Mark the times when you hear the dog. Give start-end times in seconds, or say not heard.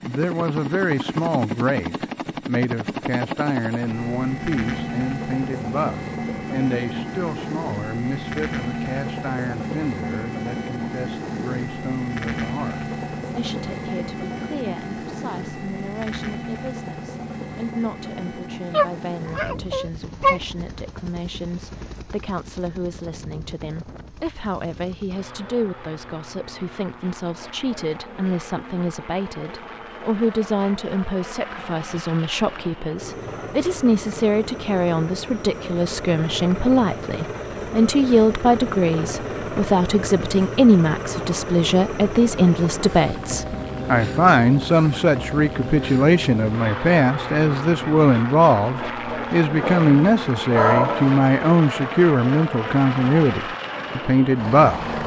18.7-20.4, 49.6-51.3.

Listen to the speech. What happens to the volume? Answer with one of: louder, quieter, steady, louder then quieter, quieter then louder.
quieter then louder.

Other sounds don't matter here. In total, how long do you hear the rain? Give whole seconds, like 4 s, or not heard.
not heard.